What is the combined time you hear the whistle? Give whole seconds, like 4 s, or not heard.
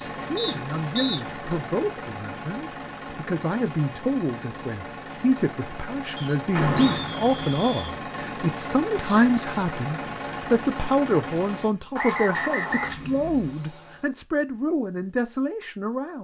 4 s.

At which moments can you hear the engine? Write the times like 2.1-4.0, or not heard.
0.0-14.1.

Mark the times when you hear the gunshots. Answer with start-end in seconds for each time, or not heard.
6.5-7.5.